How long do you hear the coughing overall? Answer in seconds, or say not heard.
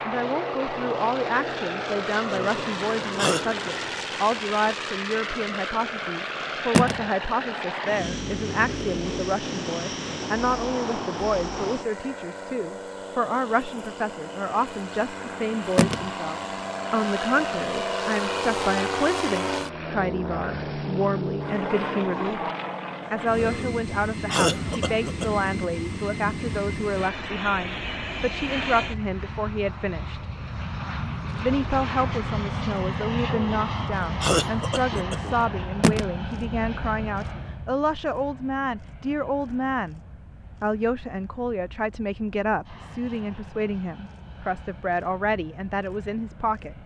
5 s.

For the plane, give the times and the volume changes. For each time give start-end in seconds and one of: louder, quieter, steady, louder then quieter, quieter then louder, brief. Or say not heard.
0.0-46.8 quieter.